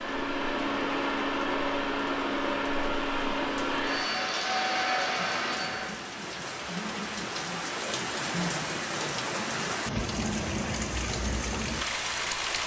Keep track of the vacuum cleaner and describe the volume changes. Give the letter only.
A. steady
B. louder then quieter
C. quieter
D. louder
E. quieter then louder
A.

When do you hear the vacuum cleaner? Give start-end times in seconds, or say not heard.
0.0-6.0.